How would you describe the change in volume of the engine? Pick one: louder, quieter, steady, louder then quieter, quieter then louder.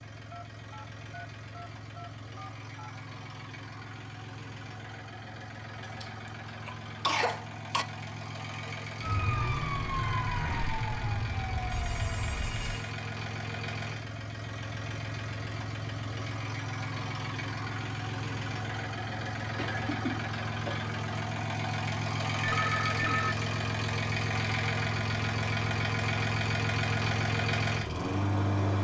louder.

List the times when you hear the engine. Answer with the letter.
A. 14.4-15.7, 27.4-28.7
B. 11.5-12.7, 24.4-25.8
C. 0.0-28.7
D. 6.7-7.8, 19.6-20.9
C.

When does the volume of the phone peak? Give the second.
23 s.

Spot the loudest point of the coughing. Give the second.
7 s.